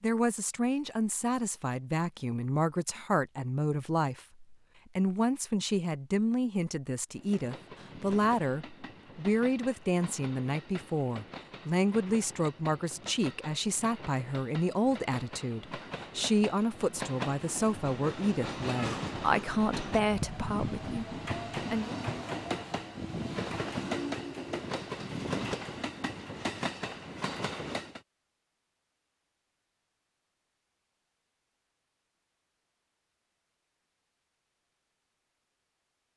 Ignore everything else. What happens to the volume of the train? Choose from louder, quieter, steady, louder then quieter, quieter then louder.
louder.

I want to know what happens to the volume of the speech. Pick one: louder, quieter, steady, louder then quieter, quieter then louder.
steady.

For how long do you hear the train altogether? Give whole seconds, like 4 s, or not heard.
21 s.